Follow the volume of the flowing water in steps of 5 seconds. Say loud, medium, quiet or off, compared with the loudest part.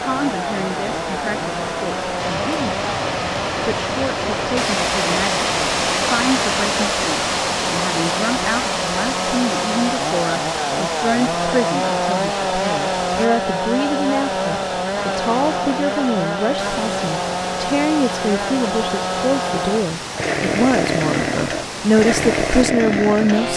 loud, loud, medium, medium, medium.